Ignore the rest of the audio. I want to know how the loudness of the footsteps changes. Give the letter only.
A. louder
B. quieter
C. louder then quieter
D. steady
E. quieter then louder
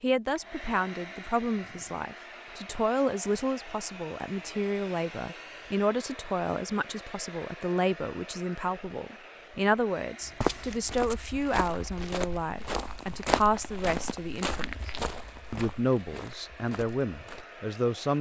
C.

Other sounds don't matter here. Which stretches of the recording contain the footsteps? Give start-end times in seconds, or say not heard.
10.2-17.4.